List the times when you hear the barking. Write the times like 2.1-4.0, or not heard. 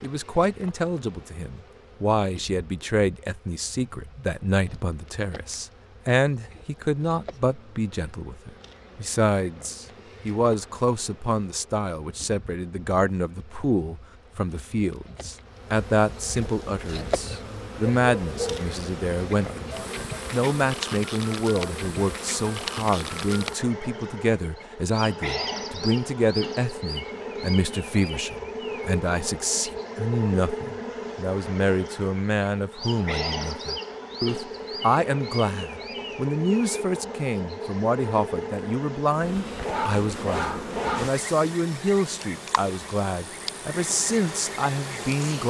17.9-18.7, 39.6-41.1.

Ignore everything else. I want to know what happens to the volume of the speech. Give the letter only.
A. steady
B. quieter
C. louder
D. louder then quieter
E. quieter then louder
A.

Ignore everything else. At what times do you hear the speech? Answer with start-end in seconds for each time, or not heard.
0.0-45.4.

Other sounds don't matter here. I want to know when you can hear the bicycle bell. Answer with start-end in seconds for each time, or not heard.
not heard.